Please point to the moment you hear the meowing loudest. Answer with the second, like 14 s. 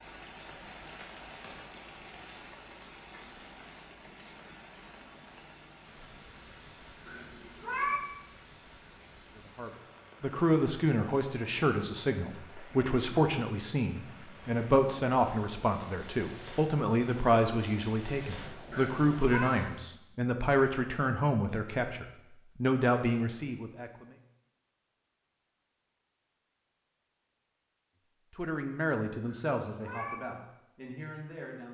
8 s.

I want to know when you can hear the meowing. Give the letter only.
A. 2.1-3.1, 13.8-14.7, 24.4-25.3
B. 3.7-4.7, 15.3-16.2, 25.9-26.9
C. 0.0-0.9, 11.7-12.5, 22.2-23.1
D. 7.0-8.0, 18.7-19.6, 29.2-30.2
D.